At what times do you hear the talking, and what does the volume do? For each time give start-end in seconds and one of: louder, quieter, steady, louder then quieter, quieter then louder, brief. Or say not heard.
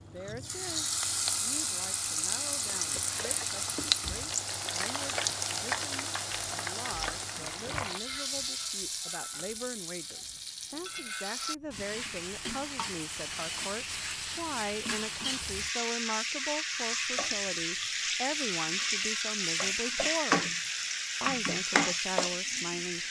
0.0-20.4 louder
21.2-23.0 brief.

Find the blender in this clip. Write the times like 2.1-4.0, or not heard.
not heard.